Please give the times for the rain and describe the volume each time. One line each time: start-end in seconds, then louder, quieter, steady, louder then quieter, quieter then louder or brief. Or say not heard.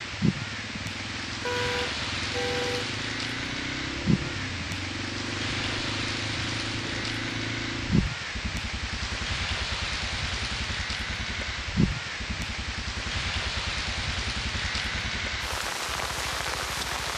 0.0-17.1 steady.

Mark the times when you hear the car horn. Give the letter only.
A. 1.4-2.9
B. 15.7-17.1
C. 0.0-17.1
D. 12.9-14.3
A.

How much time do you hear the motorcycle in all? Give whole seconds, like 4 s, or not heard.
17 s.